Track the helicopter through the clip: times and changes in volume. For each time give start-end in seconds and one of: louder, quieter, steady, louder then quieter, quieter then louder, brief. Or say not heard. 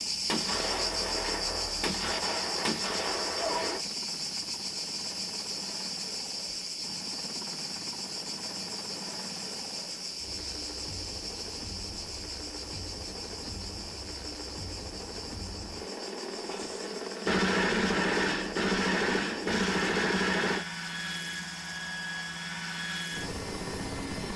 0.0-24.3 louder.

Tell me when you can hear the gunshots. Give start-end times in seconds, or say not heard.
0.2-3.8, 16.4-20.6.